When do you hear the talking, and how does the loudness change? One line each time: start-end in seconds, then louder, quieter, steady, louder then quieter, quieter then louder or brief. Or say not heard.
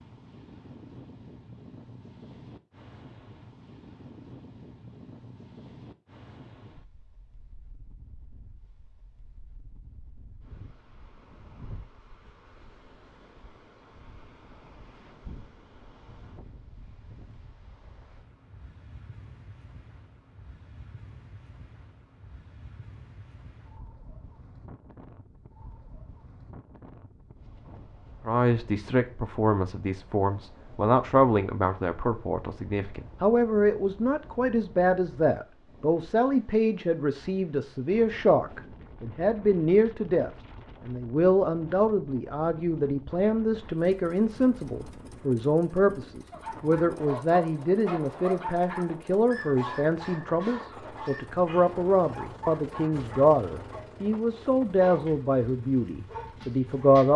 28.2-57.1 steady.